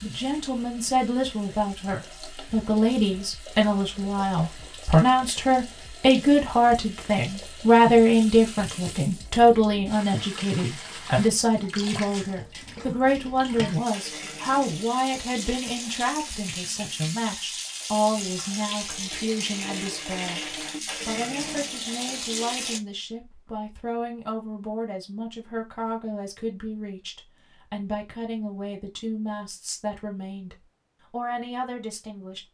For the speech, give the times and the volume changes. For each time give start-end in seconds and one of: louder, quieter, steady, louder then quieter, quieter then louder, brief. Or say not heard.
0.0-32.4 quieter.